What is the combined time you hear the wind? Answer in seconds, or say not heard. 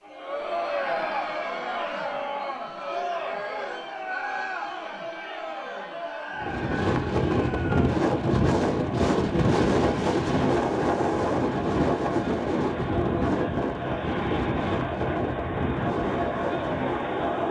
11 s.